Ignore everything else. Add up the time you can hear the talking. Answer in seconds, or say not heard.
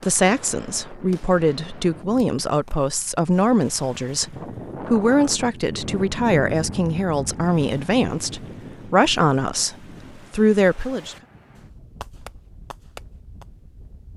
11 s.